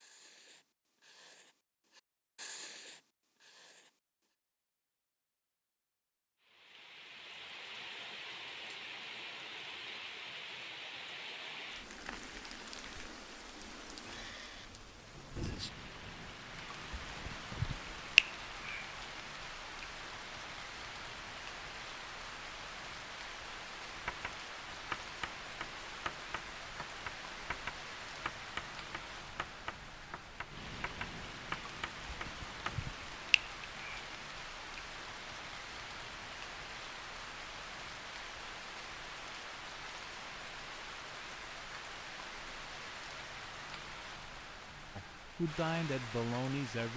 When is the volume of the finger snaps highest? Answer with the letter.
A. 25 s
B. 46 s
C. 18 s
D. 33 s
C.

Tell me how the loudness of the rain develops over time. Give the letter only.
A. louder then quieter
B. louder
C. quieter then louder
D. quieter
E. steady
E.